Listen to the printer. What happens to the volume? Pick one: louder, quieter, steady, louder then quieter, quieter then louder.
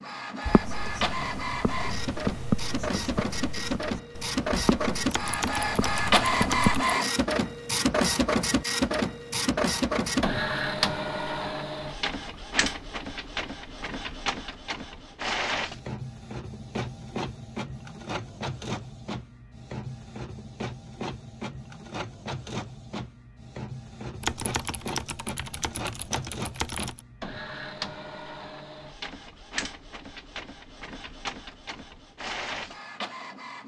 quieter.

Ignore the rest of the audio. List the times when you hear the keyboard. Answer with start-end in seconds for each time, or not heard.
5.1-6.8, 24.2-27.0.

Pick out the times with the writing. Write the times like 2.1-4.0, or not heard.
0.5-6.8.